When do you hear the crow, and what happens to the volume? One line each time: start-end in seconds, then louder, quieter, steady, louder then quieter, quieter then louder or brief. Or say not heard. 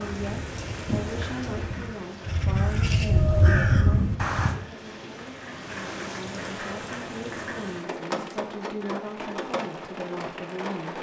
0.1-4.5 louder.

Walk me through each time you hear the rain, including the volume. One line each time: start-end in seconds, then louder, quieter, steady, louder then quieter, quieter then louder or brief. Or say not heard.
0.0-10.9 quieter then louder.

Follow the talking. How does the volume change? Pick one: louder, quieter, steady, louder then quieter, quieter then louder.
quieter then louder.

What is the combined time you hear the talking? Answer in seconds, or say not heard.
11 s.